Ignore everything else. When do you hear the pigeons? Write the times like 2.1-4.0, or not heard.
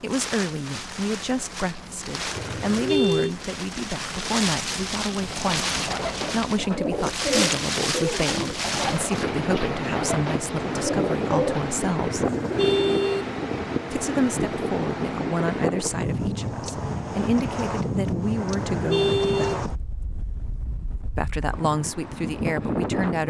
5.2-13.1.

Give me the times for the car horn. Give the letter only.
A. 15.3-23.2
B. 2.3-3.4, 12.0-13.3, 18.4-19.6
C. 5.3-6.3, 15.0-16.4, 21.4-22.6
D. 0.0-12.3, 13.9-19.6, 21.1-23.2
B.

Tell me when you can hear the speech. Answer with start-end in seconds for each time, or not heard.
0.0-12.3, 13.9-19.6, 21.1-23.2.